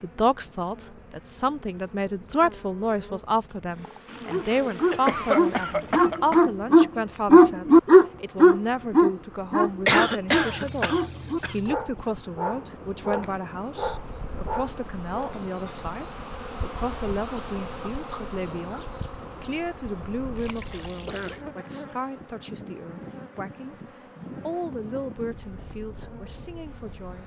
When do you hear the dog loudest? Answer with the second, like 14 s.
8 s.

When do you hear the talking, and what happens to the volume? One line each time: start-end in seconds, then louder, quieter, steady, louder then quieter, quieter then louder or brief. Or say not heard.
0.0-27.2 quieter.